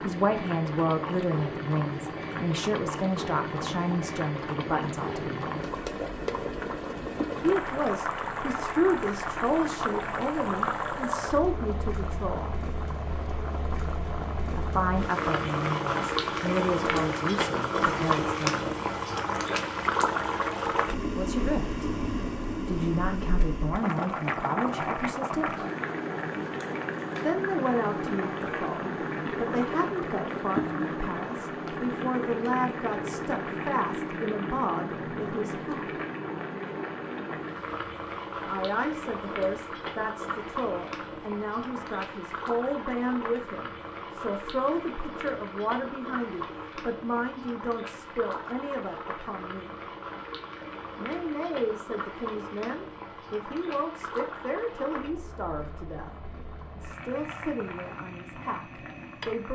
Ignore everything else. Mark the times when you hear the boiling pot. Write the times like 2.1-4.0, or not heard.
0.0-59.5.